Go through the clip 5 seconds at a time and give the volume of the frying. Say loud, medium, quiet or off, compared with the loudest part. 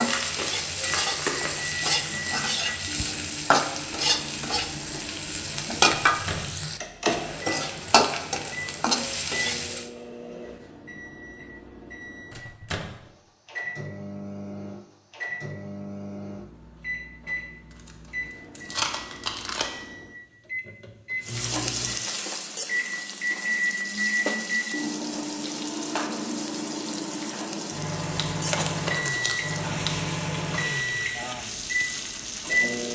loud, loud, off, off, medium, medium, medium.